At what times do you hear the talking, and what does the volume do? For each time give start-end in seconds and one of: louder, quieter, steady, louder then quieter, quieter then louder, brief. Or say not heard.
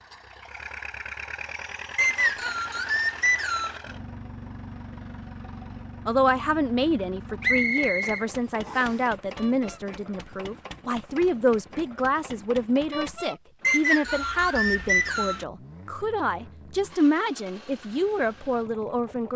6.0-19.3 steady.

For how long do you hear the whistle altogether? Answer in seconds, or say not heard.
5 s.